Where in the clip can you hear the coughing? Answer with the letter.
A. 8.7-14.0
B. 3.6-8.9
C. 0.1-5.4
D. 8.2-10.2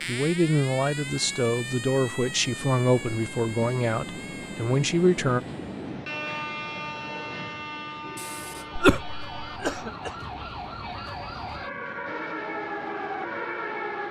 D.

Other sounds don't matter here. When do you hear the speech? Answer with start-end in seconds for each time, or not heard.
0.1-5.4.